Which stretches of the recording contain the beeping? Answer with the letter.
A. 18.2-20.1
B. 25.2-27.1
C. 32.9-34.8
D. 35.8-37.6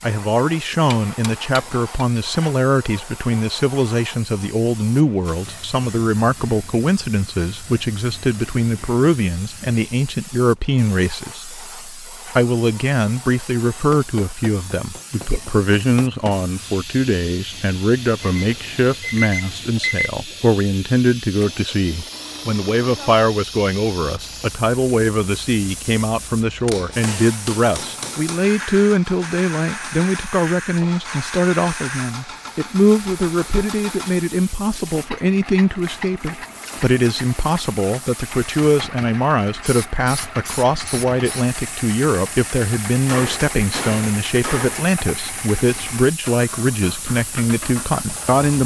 A.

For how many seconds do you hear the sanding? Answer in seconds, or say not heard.
not heard.